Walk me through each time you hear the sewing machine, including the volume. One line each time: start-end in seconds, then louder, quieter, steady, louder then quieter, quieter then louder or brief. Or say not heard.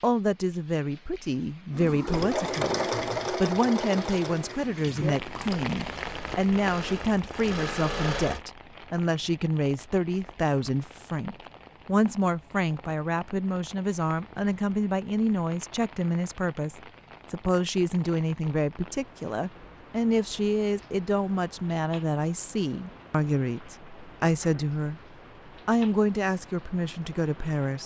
1.7-8.4 quieter then louder.